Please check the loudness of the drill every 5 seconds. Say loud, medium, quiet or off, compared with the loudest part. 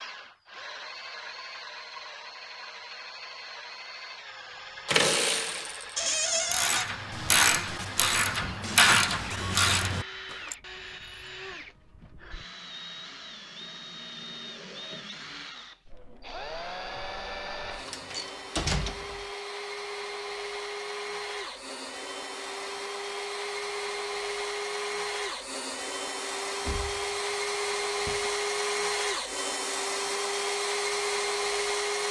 quiet, quiet, quiet, medium, medium, loud, loud.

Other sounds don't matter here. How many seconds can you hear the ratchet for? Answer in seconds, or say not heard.
6 s.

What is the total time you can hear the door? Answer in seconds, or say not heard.
4 s.